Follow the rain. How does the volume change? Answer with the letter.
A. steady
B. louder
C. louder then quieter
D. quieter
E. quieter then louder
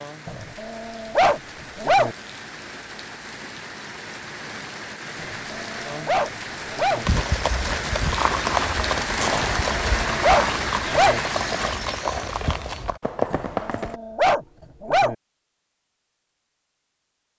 B.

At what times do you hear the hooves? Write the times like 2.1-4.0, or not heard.
7.0-14.0.